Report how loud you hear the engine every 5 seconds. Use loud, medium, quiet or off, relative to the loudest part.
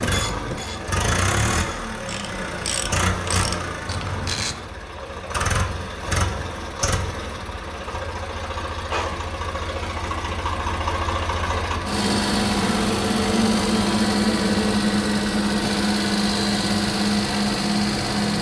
medium, medium, loud, loud.